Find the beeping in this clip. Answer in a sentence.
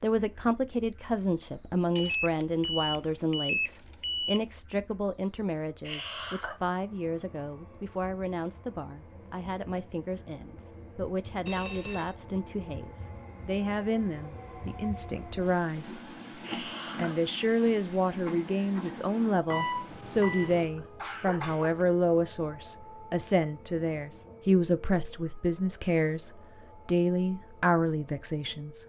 The beeping can be heard from 1.9 to 4.4 s, from 11.4 to 12.2 s and from 19.4 to 20.6 s.